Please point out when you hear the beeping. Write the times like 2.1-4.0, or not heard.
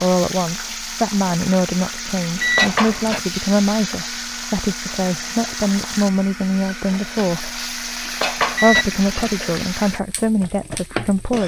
2.4-3.1, 8.6-9.3.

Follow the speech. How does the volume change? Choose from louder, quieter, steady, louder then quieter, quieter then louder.
steady.